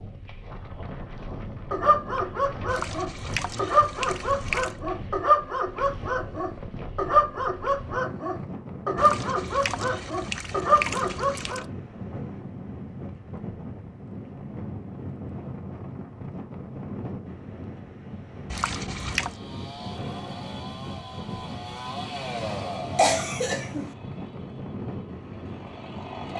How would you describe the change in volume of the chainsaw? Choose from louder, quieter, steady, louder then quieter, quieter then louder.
louder then quieter.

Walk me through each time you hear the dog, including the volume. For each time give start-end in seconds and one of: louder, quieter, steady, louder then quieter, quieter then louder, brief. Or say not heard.
1.7-11.7 steady.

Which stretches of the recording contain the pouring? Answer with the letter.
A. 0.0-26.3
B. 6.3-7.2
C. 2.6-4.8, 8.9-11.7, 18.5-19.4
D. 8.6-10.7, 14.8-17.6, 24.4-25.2
C.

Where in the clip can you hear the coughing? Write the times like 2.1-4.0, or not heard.
22.9-23.9.